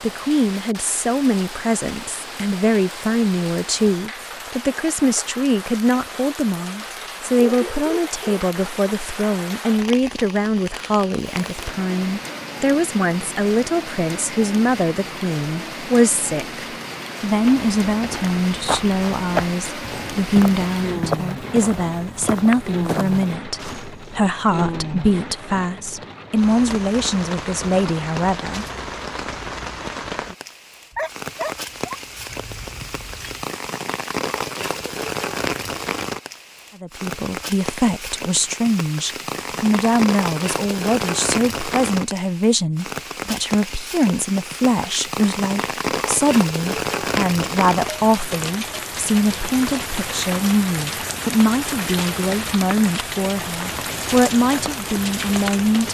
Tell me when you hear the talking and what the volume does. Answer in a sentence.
You can hear the talking from 0.0 to 28.6 s, at a steady volume; and from 36.8 to 55.8 s, at a steady volume.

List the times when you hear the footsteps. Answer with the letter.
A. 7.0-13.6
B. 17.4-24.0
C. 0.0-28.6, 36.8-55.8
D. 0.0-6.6
B.